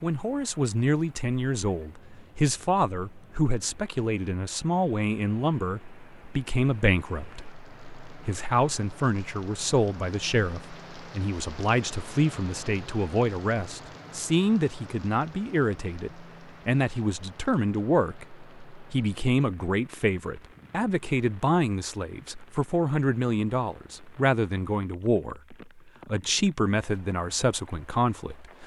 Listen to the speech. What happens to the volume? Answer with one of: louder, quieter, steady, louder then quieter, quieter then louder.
steady.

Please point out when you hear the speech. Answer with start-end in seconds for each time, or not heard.
0.0-28.6.